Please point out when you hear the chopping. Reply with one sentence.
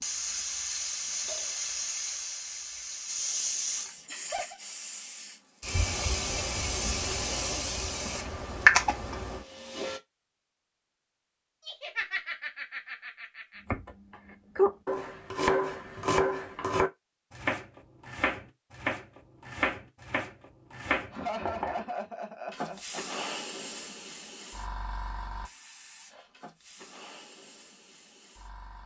You can hear the chopping from 13.7 to 21.8 s.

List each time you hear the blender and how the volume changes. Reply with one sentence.
You can't hear the blender here.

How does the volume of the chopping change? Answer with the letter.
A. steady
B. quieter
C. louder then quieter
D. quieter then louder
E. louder
B.